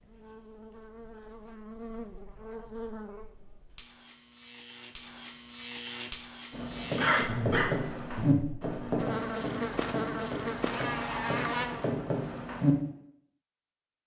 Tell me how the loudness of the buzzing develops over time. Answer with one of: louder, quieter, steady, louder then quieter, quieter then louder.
louder.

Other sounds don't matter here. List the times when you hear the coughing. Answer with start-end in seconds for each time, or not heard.
7.0-7.7.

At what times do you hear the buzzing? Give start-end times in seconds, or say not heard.
0.0-12.0.